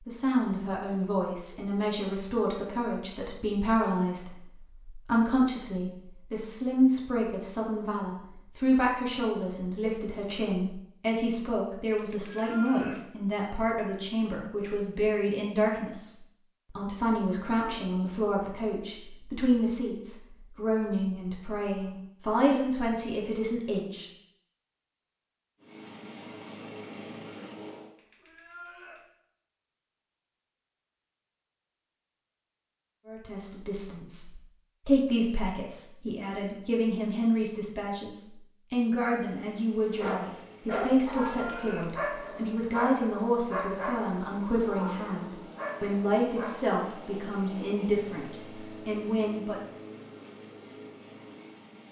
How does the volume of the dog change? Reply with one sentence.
The loudness of the dog goes down.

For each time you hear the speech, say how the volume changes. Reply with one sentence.
The speech can be heard from 0.1 to 24.1 s, at a steady volume; and from 33.0 to 49.6 s, at a steady volume.